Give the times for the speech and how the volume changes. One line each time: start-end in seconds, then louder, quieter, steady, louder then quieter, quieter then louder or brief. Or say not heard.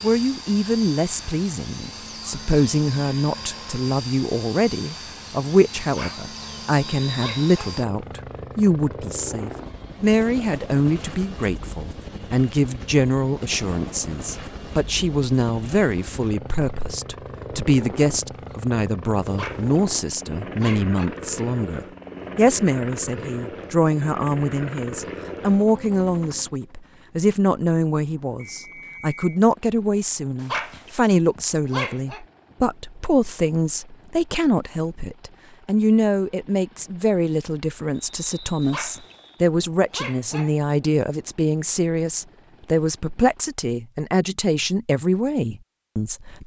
0.0-46.4 steady.